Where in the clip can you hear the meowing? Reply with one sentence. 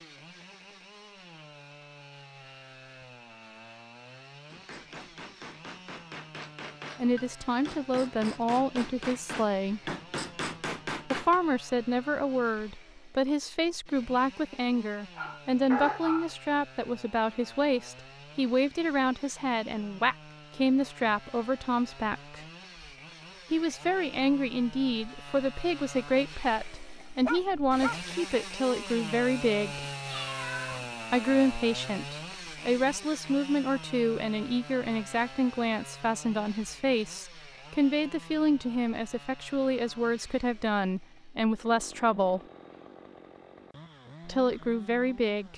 You can hear the meowing from 29.7 to 31.0 s.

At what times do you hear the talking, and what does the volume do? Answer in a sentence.
You can hear the talking briefly from 7.0 to 9.9 s; from 11.1 to 22.4 s, at a steady volume; from 23.5 to 29.9 s, at a steady volume; from 31.1 to 42.4 s, at a steady volume; and briefly from 44.2 to 45.5 s.